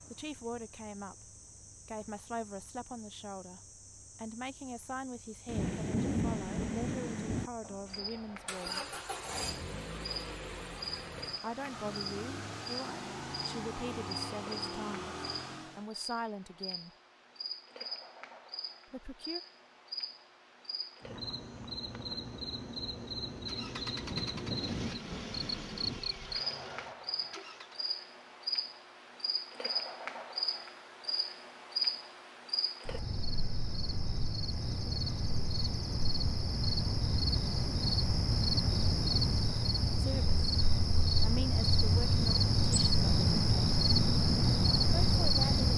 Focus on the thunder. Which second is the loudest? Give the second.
6 s.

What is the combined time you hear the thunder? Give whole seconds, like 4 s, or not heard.
4 s.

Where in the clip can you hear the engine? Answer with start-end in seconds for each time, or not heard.
7.6-15.9, 23.4-27.9.